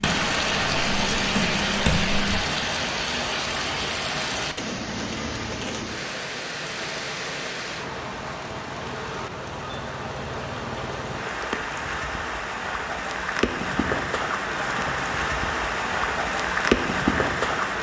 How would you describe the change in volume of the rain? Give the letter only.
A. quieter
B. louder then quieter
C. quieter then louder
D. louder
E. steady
C.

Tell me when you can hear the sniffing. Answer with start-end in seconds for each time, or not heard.
not heard.